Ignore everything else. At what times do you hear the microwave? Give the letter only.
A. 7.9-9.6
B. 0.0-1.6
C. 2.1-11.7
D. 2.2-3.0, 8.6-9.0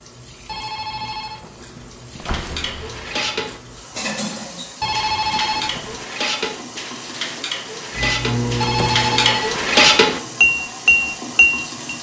A.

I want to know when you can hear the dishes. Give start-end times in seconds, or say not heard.
2.1-11.7.